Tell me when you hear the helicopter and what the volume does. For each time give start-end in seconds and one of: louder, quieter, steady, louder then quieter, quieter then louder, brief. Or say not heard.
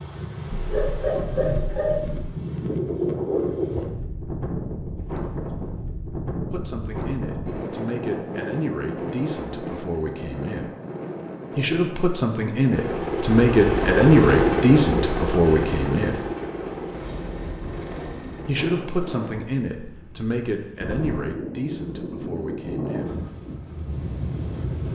12.7-18.6 quieter.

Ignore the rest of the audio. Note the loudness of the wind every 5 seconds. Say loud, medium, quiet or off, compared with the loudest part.
loud, loud, medium, medium, loud.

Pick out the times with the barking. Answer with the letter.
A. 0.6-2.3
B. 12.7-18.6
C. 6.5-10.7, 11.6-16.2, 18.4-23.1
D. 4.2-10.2
A.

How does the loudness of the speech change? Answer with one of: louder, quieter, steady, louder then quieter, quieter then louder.
louder then quieter.